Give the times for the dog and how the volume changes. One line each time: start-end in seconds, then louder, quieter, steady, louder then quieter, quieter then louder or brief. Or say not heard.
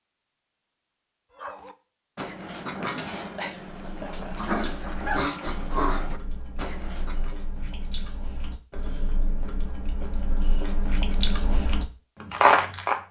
1.4-7.3 louder then quieter.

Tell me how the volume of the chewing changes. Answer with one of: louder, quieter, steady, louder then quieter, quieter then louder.
louder.